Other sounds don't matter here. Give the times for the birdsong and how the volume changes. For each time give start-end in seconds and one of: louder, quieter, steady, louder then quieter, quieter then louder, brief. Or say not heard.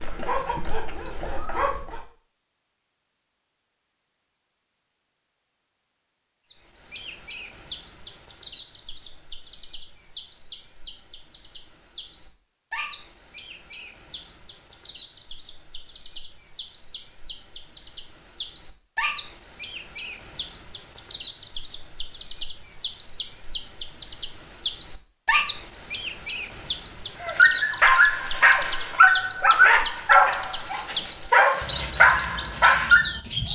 6.5-33.5 louder.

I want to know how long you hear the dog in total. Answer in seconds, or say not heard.
8 s.